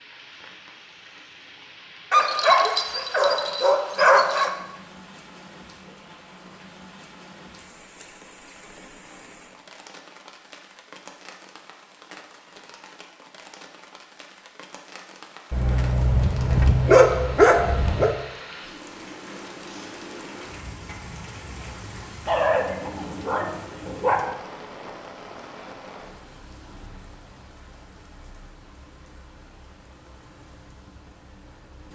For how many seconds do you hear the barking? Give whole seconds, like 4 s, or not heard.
7 s.